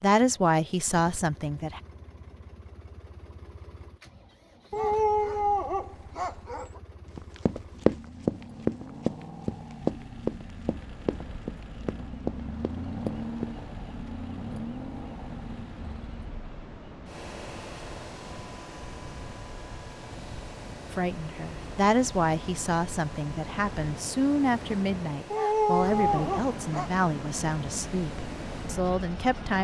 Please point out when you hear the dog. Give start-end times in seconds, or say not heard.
4.7-6.8, 25.3-26.9.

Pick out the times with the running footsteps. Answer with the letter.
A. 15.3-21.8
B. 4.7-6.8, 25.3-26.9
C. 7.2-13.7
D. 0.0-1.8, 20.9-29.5
C.